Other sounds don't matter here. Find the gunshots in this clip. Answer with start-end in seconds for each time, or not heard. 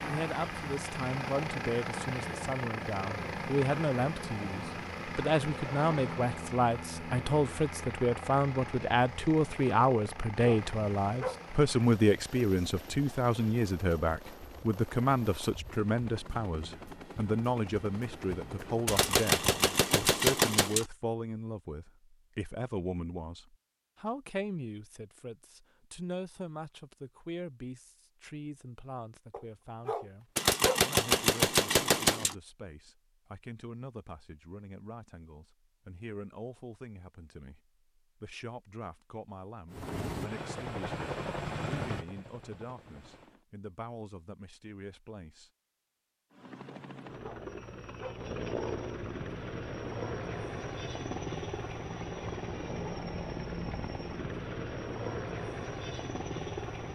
18.9-20.9, 30.4-32.4.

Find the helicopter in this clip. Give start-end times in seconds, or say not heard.
0.0-20.2, 39.7-43.5, 46.3-56.8.